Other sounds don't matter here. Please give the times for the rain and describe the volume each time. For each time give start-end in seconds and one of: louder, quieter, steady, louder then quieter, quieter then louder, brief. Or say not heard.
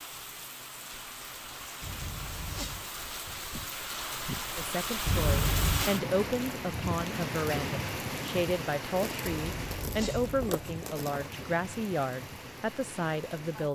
0.0-13.7 louder then quieter.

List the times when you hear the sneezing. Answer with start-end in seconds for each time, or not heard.
1.8-2.9, 5.0-5.9, 9.4-10.6.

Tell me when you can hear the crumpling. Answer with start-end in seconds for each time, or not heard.
8.9-11.3.